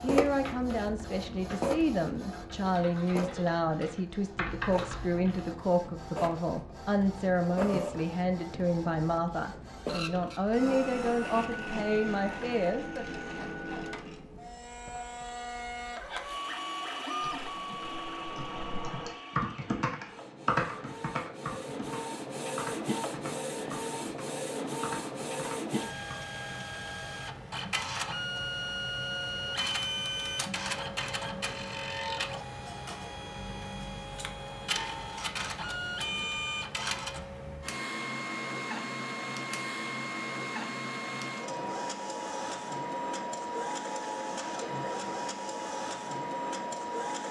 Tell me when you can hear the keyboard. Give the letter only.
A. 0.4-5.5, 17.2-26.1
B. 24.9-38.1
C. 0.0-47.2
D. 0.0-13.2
A.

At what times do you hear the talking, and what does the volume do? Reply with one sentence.
You can hear the talking from 0.0 to 13.2 s, at a steady volume.